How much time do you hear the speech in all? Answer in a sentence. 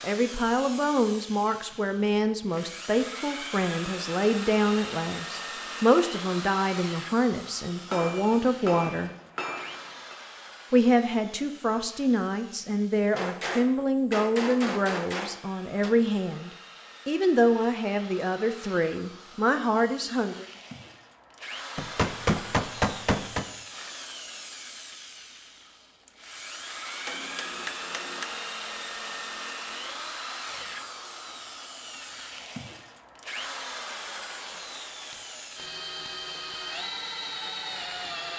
You can hear the speech for 19 seconds altogether.